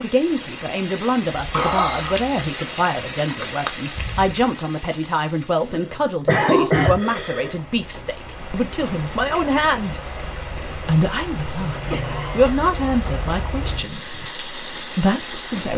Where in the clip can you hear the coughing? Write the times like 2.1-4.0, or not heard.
1.5-2.2, 5.7-7.5, 11.9-12.6.